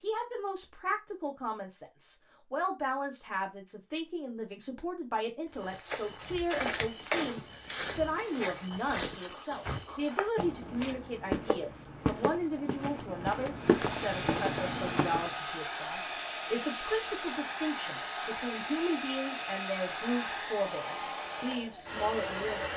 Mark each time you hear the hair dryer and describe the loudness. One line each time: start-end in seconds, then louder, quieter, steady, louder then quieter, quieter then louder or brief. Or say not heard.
13.5-22.7 steady.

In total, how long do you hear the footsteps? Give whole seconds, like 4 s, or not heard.
10 s.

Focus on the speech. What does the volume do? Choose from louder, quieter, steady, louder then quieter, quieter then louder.
steady.